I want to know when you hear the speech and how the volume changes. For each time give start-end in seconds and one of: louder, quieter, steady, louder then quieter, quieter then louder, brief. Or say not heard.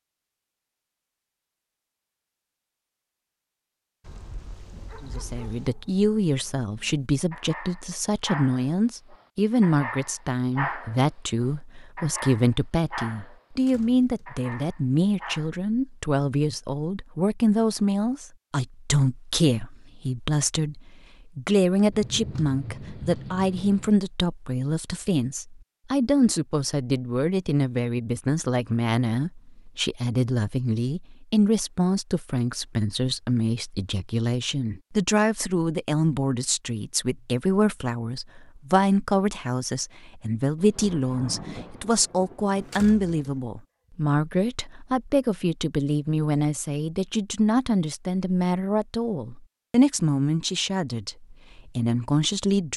5.0-52.7 steady.